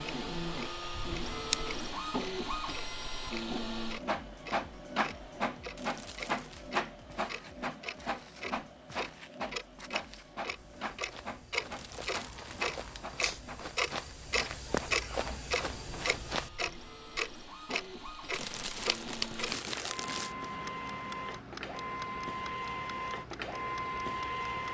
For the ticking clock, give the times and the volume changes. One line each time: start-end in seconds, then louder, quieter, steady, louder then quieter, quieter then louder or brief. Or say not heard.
0.0-24.6 louder then quieter.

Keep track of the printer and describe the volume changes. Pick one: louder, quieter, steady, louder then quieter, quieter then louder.
quieter then louder.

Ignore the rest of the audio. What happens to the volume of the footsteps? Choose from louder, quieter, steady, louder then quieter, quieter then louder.
louder.